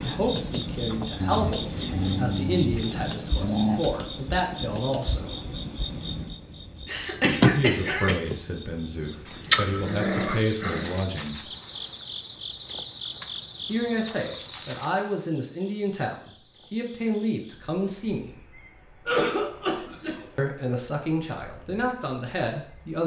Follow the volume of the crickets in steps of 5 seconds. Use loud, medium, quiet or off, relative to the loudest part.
medium, loud, loud, quiet, quiet.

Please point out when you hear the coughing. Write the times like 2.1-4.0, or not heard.
6.8-8.2, 19.1-20.2.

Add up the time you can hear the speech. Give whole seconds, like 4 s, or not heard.
17 s.